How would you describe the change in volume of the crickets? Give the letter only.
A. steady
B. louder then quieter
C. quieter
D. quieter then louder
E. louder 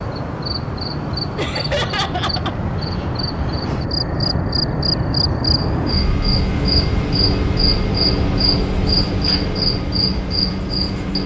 E.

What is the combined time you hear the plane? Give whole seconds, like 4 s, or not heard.
11 s.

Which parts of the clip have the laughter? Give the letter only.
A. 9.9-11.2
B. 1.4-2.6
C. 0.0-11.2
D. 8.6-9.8
B.